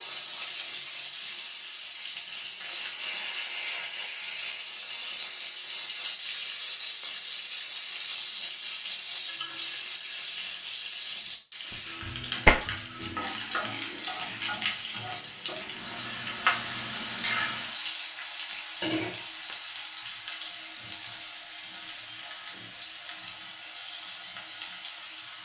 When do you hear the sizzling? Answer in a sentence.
The sizzling can be heard from 0.0 to 25.4 s.